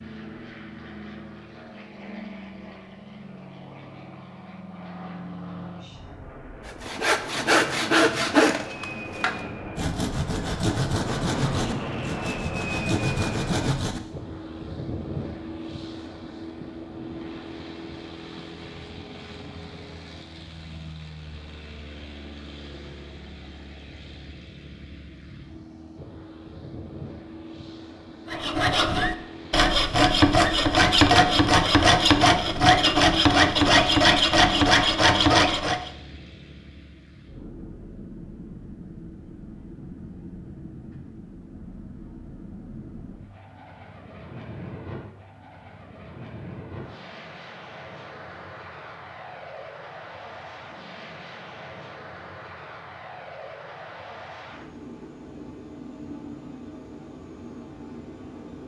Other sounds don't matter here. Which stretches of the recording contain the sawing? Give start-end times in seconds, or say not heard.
6.7-14.0, 28.3-35.9.